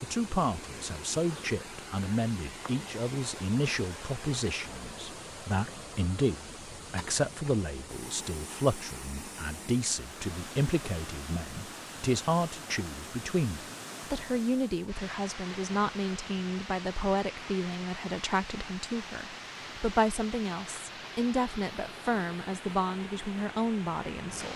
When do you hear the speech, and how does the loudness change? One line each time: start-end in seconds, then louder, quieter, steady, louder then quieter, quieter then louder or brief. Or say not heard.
0.0-24.5 steady.